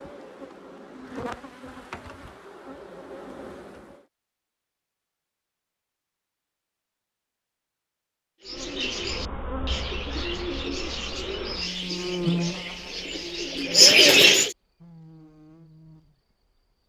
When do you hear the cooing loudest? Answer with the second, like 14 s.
14 s.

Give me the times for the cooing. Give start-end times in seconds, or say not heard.
8.4-14.5.